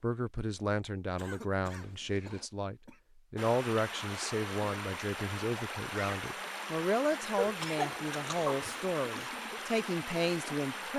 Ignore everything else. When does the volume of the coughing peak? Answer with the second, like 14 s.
8 s.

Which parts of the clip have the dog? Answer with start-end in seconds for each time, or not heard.
not heard.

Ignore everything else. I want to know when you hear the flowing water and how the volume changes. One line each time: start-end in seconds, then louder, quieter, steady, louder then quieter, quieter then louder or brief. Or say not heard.
3.4-10.9 steady.